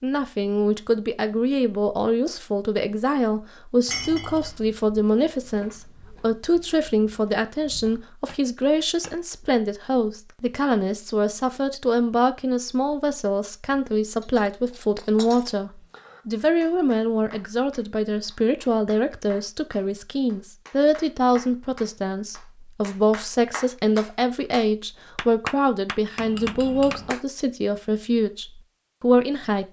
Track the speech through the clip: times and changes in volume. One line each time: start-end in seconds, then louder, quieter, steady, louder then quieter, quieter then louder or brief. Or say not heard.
0.0-29.6 steady.